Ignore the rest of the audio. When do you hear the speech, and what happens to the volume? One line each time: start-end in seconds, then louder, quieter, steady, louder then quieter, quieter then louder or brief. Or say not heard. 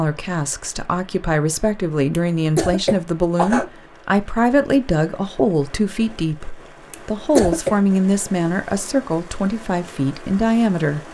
0.0-11.0 steady.